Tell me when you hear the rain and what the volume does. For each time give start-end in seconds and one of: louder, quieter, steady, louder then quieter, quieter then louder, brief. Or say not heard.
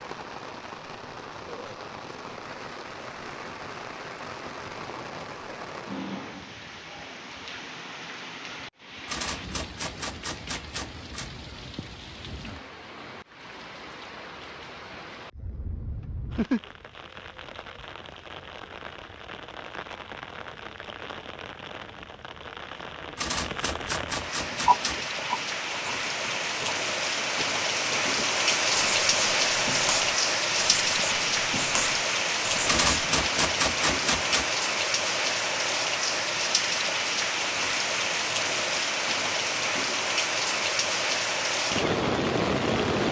0.0-43.0 louder.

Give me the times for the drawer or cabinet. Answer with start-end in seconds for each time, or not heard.
not heard.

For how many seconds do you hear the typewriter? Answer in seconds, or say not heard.
6 s.